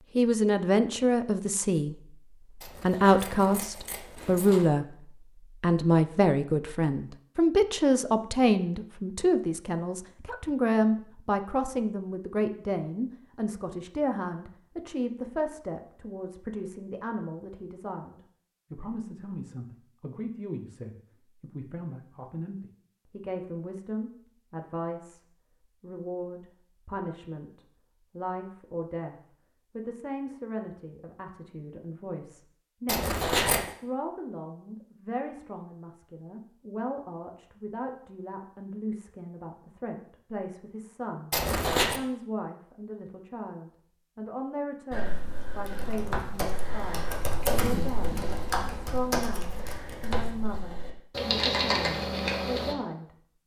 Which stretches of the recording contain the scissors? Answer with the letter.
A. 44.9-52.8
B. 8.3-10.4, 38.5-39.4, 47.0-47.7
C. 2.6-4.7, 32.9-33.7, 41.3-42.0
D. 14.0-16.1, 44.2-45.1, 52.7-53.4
C.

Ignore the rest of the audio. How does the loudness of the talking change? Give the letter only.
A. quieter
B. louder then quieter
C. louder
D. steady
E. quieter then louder
A.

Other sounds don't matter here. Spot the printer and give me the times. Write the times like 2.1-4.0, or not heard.
not heard.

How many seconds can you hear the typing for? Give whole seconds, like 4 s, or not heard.
8 s.